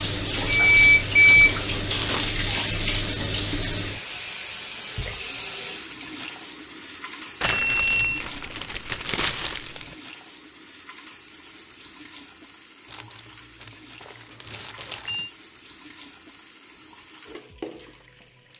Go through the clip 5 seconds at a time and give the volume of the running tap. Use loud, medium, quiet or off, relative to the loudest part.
loud, medium, quiet, quiet.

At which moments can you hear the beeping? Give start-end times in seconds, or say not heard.
0.5-1.6, 7.4-8.2, 14.3-15.3.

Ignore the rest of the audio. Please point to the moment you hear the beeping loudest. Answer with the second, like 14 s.
1 s.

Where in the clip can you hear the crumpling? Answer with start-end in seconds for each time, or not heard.
1.2-2.4, 7.4-9.9, 12.8-15.2.